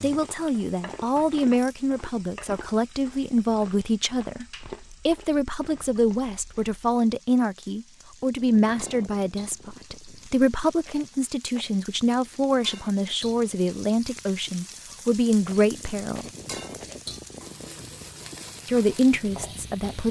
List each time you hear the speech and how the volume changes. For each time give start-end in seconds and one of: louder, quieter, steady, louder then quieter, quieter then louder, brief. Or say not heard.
0.0-16.2 steady
18.6-20.0 brief.